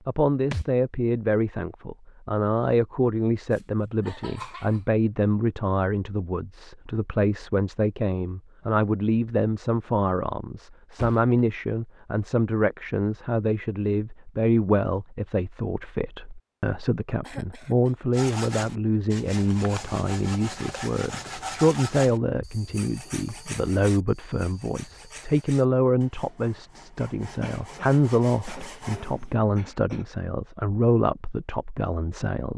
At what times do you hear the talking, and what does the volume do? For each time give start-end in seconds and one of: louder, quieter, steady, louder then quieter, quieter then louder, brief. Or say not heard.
0.1-32.5 steady.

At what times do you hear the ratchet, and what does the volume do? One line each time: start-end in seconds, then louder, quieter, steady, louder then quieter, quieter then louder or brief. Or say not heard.
not heard.